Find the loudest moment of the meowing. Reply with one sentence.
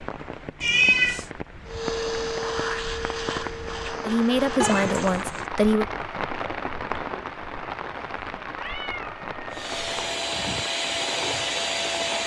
The volume of the meowing peaks at 1 second.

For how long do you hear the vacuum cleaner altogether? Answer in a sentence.
You can hear the vacuum cleaner for 6 seconds altogether.